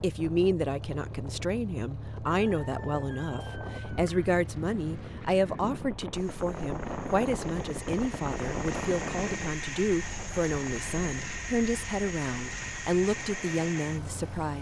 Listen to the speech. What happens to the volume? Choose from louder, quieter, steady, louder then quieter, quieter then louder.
steady.